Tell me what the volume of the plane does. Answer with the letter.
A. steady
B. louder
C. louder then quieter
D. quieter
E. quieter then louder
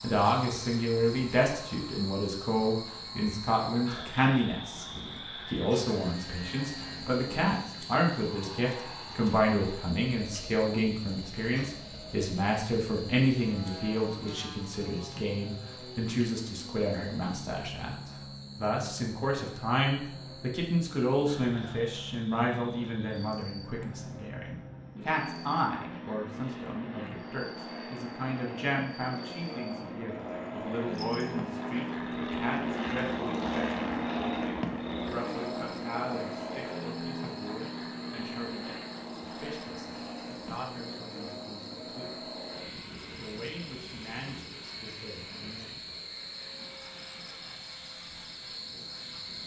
C.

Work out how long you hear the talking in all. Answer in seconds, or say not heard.
44 s.